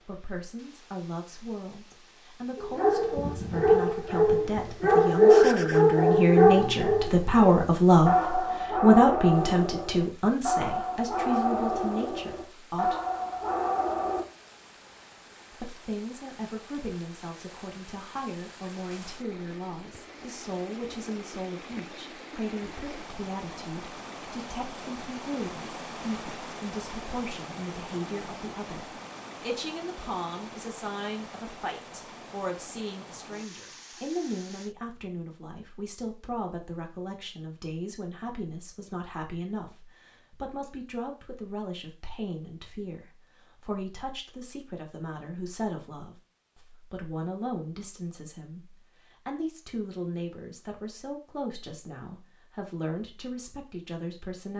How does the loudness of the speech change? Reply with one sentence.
The loudness of the speech goes down.